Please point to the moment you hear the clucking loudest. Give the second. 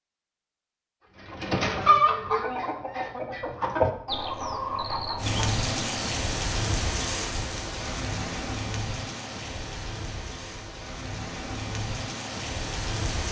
2 s.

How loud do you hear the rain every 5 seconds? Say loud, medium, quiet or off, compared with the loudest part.
off, loud, loud.